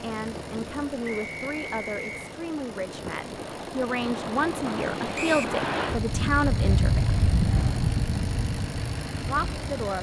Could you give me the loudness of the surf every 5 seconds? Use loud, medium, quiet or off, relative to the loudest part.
medium, loud.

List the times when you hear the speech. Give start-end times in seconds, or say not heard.
0.0-7.1, 9.2-9.9.